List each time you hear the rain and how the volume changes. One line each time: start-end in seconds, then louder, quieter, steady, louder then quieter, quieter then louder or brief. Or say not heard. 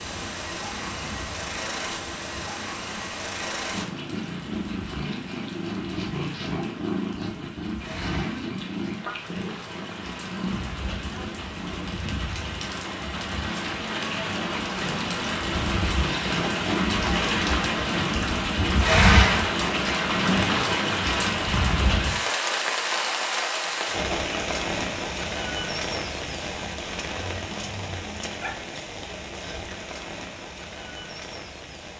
0.0-31.9 louder then quieter.